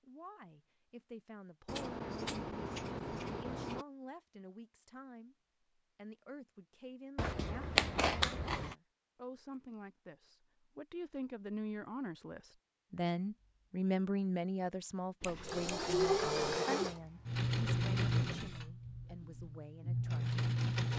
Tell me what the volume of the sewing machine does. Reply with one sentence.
The volume of the sewing machine goes down, then up.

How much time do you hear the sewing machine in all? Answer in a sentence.
You can hear the sewing machine for 6 seconds altogether.